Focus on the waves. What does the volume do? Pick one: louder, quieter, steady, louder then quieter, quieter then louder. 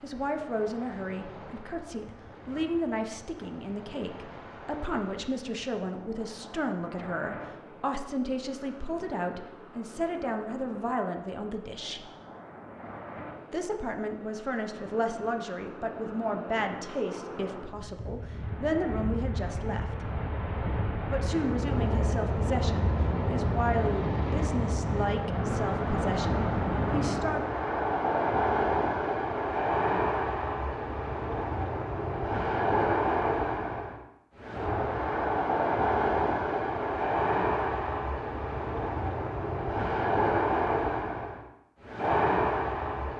louder.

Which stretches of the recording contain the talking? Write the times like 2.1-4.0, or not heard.
0.0-12.1, 13.5-20.1, 21.1-27.6.